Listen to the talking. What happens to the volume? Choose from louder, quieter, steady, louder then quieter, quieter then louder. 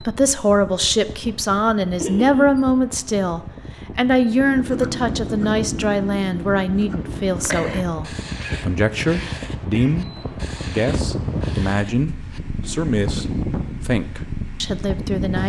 quieter.